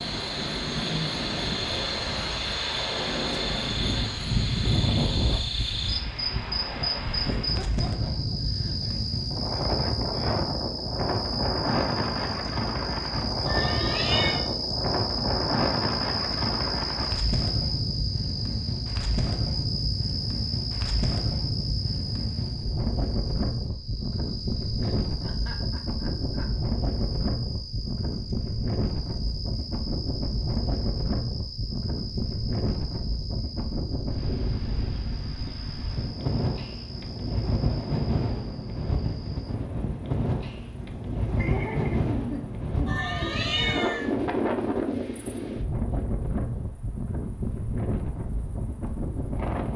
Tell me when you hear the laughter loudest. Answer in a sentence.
The volume of the laughter peaks at 42 seconds.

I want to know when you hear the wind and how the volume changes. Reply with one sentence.
You can hear the wind from 0.0 to 49.7 s, at a steady volume.